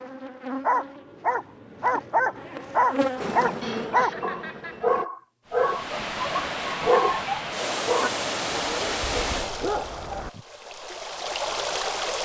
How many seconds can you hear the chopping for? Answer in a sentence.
The chopping can't be heard in this clip.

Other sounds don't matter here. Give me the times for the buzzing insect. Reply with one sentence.
You can hear the buzzing insect from 0.0 to 5.0 s.